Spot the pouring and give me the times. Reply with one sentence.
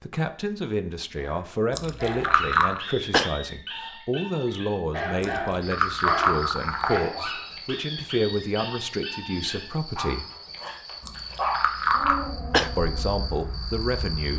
The pouring can be heard from 1.7 to 2.8 s, from 5.2 to 7.0 s and from 11.0 to 12.2 s.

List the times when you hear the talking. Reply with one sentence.
You can hear the talking from 0.0 to 10.2 s and from 12.8 to 14.3 s.